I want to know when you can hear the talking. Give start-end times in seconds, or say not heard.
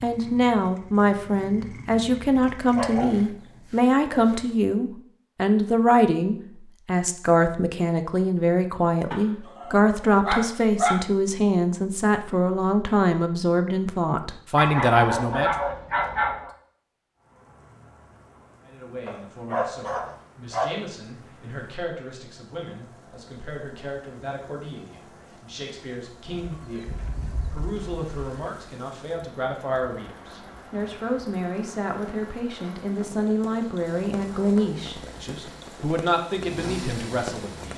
0.0-15.5, 18.6-37.7.